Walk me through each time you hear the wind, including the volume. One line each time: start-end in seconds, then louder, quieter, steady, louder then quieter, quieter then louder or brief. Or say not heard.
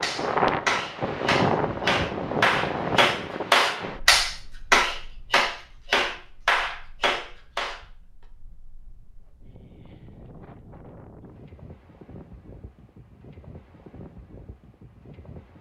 0.0-15.5 quieter then louder.